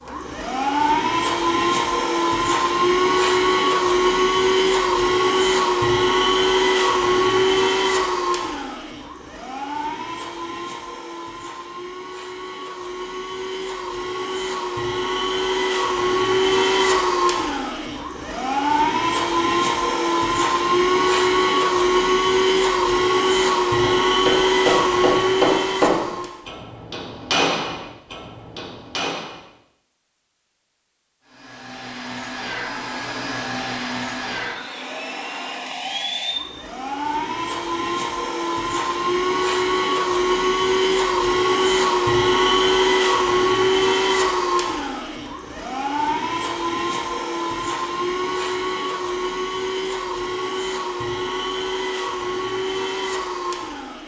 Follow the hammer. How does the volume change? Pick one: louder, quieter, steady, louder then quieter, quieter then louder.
quieter.